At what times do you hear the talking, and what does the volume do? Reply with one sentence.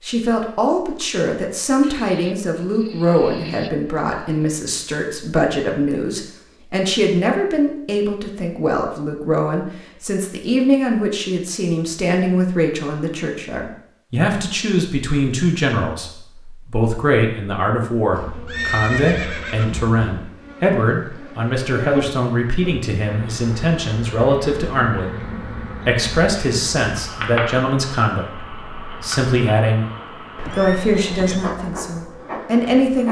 The talking can be heard from 0.0 to 29.9 s, at a steady volume; and briefly from 30.6 to 33.0 s.